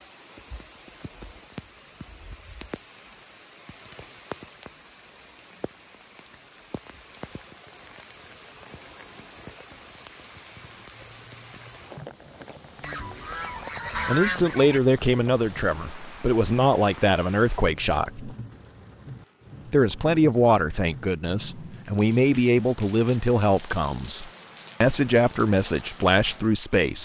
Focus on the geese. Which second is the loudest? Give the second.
14 s.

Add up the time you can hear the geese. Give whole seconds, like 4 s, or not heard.
2 s.